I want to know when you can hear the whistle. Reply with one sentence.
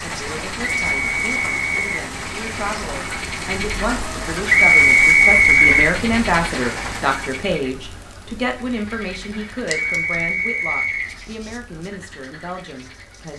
The whistle can be heard from 0.8 to 1.9 s, from 4.5 to 6.0 s and from 9.7 to 11.2 s.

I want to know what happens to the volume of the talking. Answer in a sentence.
The loudness of the talking goes up, then down.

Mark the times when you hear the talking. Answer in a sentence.
You can hear the talking from 0.0 to 13.3 s.